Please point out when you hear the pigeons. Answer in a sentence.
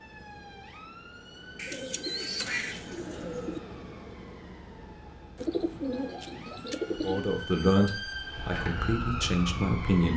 You can hear the pigeons from 1.6 to 3.6 s and from 5.3 to 7.2 s.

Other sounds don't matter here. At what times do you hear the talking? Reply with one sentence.
You can hear the talking from 6.9 to 10.1 s.